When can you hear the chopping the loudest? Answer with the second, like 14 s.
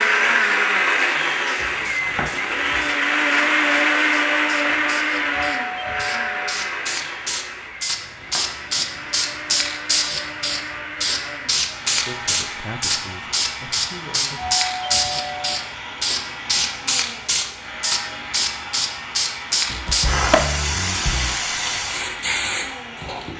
20 s.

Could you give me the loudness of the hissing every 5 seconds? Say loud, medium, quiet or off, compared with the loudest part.
quiet, loud, loud, loud, loud.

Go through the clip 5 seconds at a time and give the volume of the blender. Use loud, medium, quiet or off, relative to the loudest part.
loud, medium, quiet, quiet, quiet.